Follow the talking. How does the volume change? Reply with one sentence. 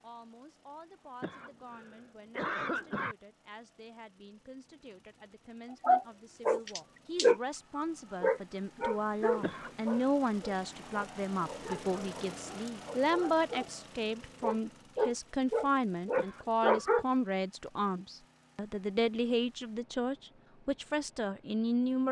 The volume of the talking goes up.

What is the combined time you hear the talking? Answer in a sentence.
You can hear the talking for 22 seconds altogether.